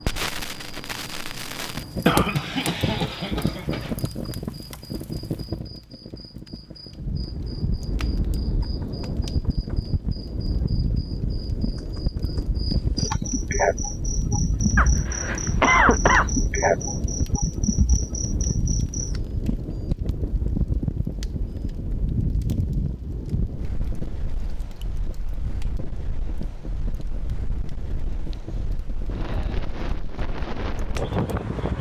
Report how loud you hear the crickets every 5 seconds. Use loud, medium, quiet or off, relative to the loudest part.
quiet, quiet, loud, loud, off, off, off.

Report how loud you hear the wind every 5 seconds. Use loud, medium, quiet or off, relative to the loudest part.
off, loud, loud, loud, loud, medium, loud.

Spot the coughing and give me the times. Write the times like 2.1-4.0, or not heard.
2.0-3.9, 14.8-16.3, 28.1-28.6.